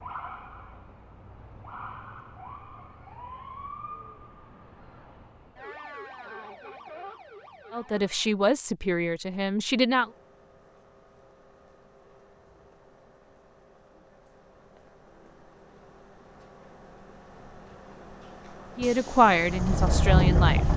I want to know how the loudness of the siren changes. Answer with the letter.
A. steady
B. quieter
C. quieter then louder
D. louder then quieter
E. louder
A.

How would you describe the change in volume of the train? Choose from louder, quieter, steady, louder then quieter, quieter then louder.
louder.